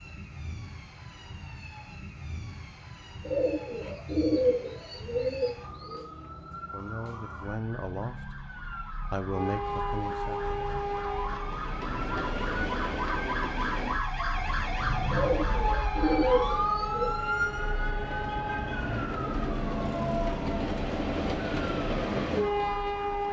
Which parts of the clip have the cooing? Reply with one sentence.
You can hear the cooing from 3.2 to 6.0 s and from 15.1 to 17.1 s.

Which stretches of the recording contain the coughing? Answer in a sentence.
You can't hear the coughing here.